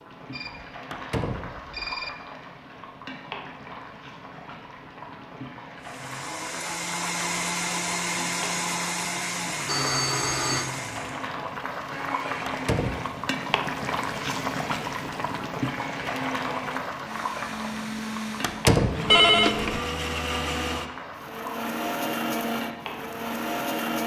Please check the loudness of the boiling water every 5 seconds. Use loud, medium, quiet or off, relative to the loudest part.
medium, medium, loud, loud, medium.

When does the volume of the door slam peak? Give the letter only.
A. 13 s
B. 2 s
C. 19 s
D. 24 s
C.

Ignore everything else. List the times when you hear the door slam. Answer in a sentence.
The door slam can be heard from 0.9 to 1.6 s, from 12.4 to 13.1 s and from 18.4 to 19.1 s.